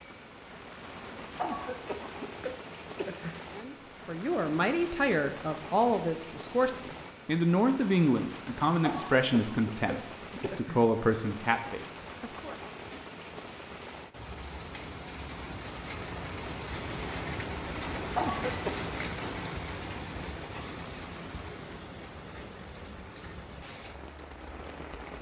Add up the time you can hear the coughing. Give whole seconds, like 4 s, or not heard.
5 s.